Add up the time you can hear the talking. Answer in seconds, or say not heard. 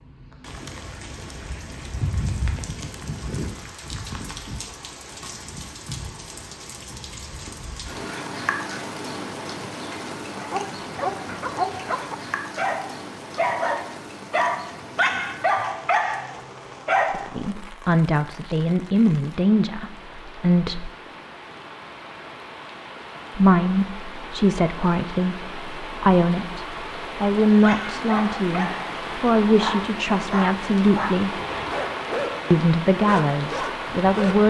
14 s.